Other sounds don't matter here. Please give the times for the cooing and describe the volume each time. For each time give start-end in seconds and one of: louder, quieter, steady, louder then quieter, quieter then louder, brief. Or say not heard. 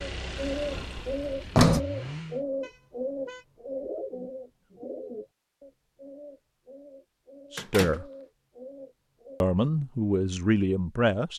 0.0-9.4 quieter.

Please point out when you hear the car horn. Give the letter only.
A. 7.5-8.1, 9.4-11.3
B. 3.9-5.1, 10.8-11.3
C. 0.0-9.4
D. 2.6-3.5
D.